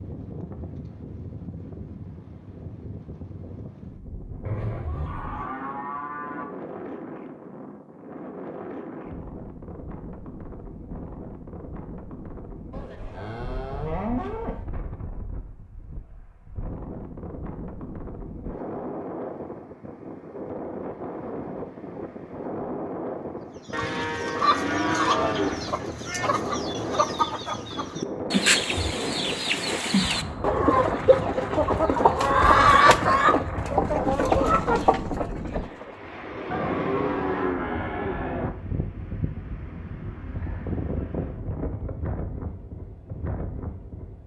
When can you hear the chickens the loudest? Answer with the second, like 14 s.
33 s.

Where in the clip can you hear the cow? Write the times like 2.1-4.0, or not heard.
4.4-6.5, 12.7-14.7, 23.7-25.8, 36.5-38.5.